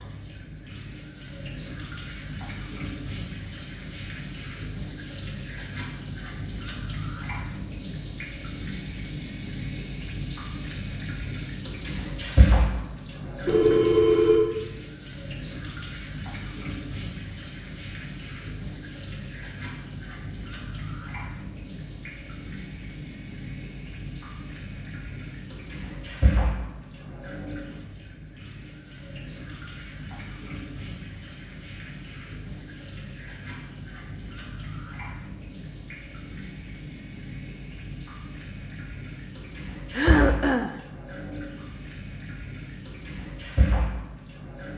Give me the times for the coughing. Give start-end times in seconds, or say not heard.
39.9-40.8.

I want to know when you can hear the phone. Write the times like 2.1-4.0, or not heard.
13.4-14.4.